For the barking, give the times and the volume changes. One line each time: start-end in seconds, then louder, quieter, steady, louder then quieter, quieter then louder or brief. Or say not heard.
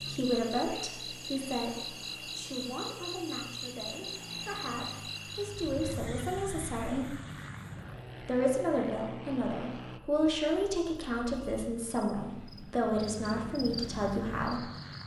not heard.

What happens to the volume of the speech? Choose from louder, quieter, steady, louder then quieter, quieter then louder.
quieter then louder.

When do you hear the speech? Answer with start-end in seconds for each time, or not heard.
0.0-7.2, 8.2-14.7.